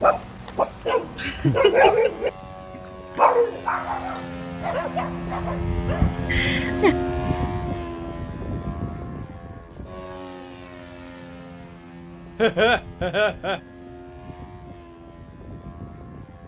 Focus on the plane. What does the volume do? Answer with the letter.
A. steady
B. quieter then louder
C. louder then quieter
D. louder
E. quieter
C.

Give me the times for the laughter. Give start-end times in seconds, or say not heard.
1.1-2.3, 6.2-7.0, 12.3-13.6.